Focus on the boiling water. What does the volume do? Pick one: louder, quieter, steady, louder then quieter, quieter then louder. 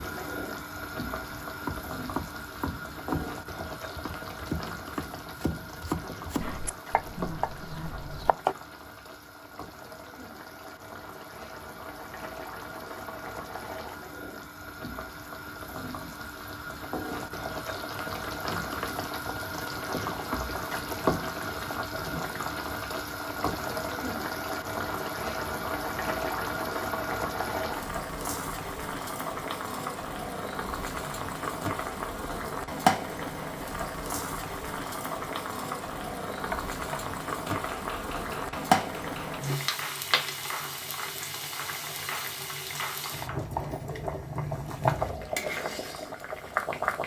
louder.